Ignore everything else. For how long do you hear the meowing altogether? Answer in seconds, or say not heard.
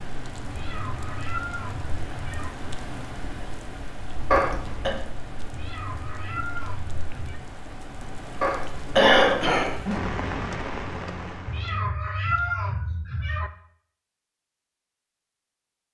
6 s.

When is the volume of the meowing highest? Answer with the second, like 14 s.
12 s.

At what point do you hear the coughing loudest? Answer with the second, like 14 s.
9 s.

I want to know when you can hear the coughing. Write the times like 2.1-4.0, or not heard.
4.3-4.9, 8.4-9.8.